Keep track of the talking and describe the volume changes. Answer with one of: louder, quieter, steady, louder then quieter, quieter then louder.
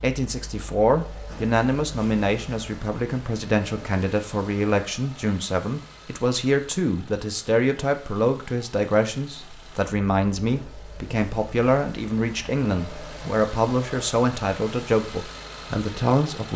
steady.